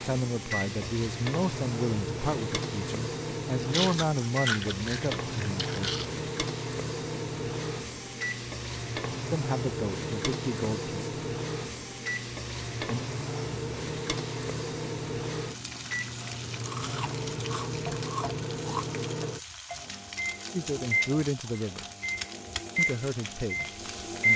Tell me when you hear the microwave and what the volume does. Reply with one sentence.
You can hear the microwave from 0.0 to 24.3 s, at a steady volume.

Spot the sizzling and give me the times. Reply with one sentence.
The sizzling can be heard from 0.0 to 24.3 s.